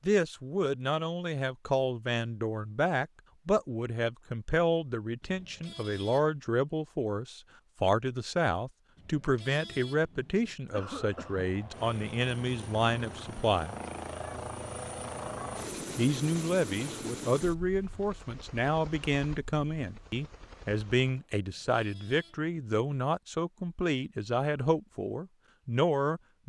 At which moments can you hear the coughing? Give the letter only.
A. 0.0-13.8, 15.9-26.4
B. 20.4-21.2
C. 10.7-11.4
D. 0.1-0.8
C.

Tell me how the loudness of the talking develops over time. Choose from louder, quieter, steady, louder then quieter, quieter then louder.
steady.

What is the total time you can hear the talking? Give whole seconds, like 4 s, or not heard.
24 s.